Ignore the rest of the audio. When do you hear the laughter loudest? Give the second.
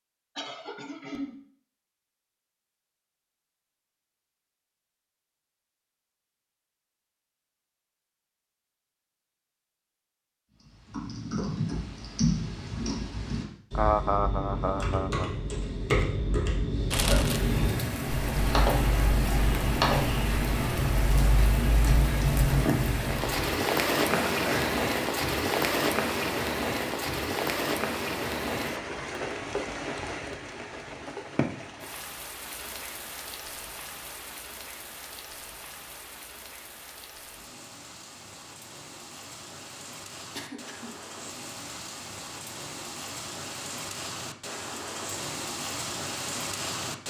14 s.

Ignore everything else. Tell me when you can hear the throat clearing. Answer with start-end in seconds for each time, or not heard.
0.3-1.4, 24.1-24.8, 40.4-41.0.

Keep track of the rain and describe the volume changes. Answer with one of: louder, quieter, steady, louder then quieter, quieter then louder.
quieter then louder.